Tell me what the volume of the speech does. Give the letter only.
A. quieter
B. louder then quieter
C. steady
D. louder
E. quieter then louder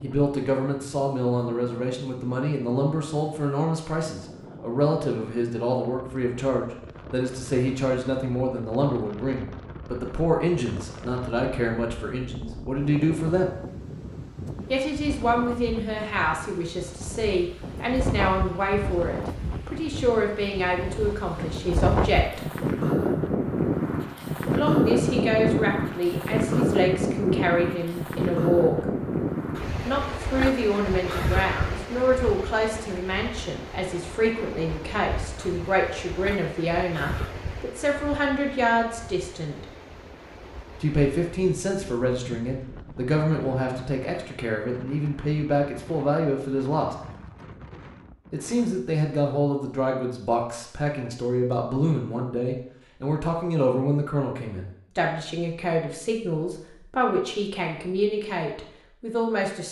C.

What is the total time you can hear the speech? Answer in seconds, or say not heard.
53 s.